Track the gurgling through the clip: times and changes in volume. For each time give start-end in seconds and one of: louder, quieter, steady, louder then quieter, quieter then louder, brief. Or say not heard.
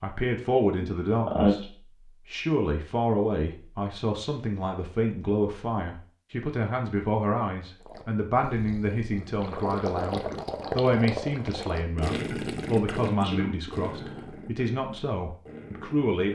7.8-16.3 louder then quieter.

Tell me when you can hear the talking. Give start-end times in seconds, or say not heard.
0.0-16.3.